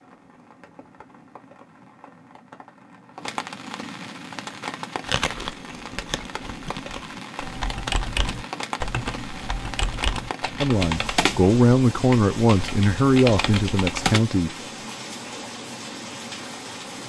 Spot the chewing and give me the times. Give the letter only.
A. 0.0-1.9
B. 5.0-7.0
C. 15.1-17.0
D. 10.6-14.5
B.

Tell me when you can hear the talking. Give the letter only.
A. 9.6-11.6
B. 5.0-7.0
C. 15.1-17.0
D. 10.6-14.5
D.